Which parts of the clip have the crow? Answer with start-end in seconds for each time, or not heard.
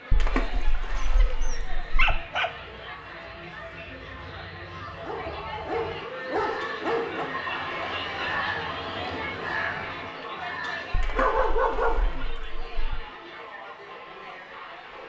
1.4-10.9.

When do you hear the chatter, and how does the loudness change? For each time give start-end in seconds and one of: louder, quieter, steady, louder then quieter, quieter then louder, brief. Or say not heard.
0.0-15.0 louder then quieter.